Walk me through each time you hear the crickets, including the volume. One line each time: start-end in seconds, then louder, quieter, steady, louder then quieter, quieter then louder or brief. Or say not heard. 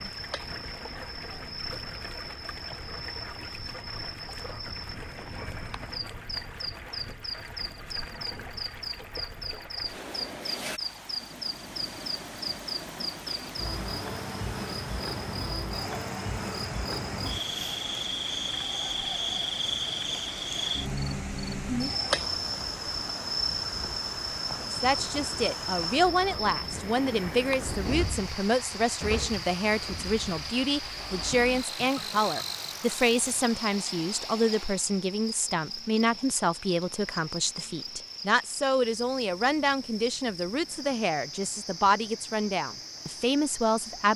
0.0-44.1 louder then quieter.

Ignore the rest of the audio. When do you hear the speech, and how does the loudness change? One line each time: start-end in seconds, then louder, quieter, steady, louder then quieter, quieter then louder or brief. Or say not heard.
24.7-44.1 steady.